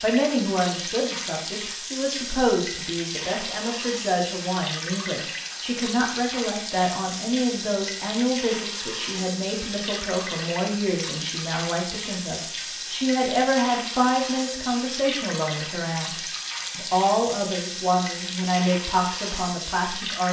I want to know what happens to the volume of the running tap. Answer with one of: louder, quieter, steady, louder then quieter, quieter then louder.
steady.